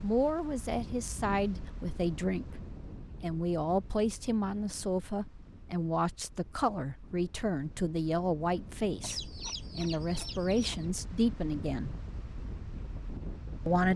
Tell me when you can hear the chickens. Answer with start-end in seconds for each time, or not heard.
9.0-10.8.